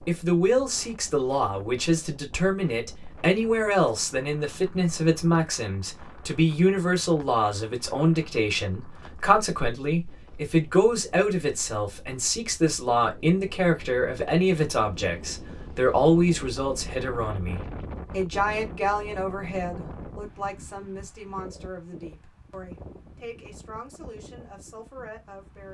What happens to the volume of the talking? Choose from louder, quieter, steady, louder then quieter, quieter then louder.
quieter.